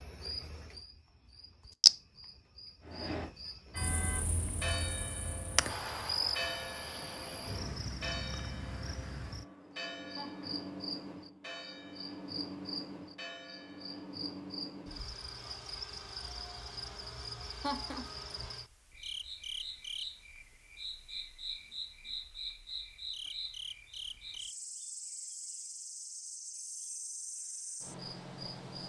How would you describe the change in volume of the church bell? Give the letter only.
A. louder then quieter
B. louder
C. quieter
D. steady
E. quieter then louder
C.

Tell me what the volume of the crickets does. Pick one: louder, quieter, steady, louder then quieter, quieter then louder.
quieter.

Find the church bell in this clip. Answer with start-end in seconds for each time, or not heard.
2.8-14.2.